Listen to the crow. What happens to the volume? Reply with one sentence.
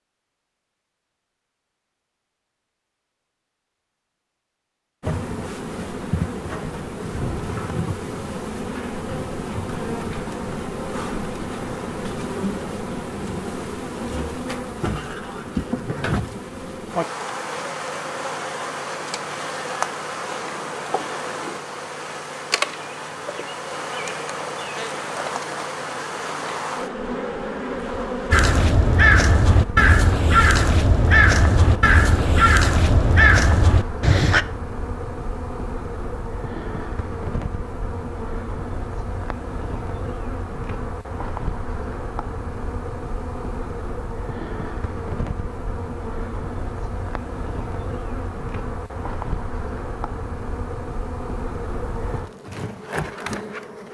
The volume of the crow stays about the same.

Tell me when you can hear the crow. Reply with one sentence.
You can hear the crow from 28.3 to 34.5 s.